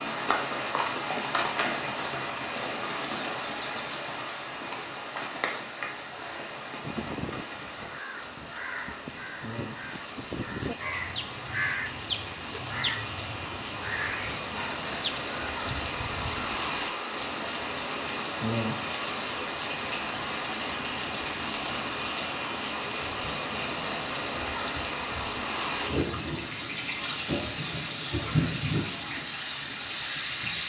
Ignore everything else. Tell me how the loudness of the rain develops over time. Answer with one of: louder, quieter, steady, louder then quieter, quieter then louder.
quieter then louder.